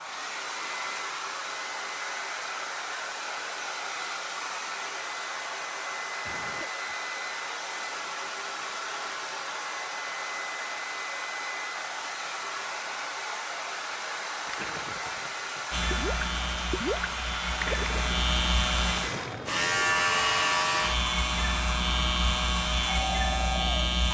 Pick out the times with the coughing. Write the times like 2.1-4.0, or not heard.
6.2-7.0.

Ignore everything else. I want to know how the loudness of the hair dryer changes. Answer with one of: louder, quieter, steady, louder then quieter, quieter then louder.
steady.